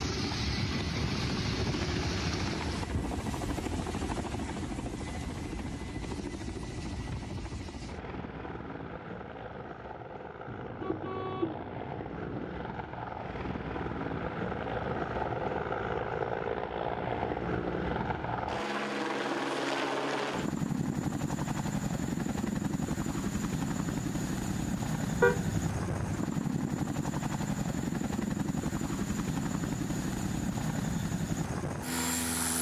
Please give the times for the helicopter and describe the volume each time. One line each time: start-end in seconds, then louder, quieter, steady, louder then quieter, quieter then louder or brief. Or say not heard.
0.0-32.5 quieter then louder.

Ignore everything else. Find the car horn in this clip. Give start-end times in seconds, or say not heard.
10.4-12.5, 25.2-26.2.